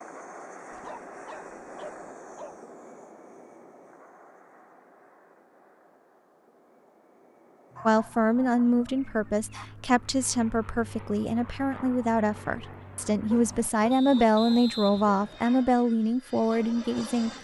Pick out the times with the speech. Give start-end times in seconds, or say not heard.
7.8-17.3.